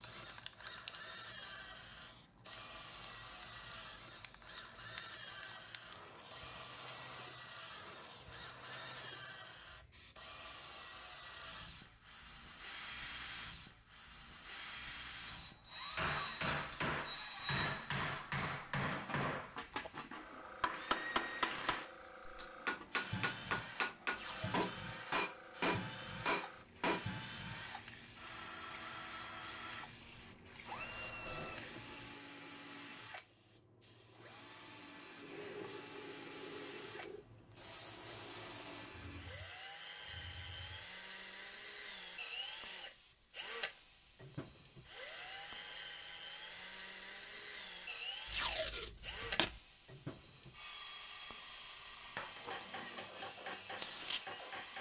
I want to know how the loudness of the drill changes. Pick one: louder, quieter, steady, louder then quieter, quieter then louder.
steady.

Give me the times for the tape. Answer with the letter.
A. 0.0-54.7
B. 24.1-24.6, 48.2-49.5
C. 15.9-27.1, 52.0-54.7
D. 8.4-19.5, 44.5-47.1
B.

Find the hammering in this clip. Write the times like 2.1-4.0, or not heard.
15.9-27.1, 52.0-54.7.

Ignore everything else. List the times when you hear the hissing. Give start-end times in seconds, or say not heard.
0.0-54.7.